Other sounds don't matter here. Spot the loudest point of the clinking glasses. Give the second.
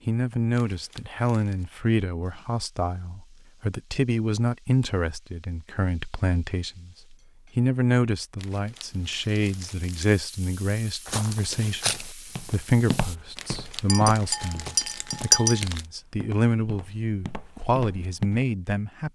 15 s.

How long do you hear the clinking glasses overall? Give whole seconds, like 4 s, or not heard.
2 s.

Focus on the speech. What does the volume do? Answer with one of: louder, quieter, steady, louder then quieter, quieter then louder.
steady.